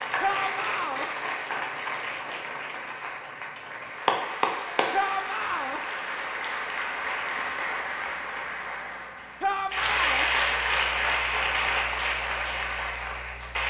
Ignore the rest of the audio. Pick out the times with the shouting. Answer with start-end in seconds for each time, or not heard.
0.2-1.1, 4.9-5.8, 9.4-10.3.